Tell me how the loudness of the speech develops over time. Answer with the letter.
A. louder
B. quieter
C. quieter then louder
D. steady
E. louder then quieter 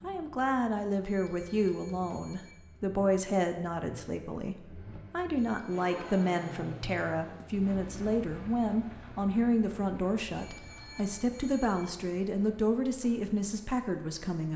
D.